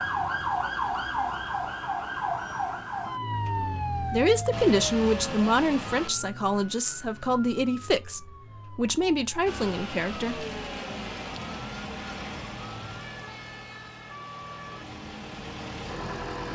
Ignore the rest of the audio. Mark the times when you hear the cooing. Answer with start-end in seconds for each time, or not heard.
not heard.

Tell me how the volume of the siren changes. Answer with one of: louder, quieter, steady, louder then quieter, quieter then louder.
quieter.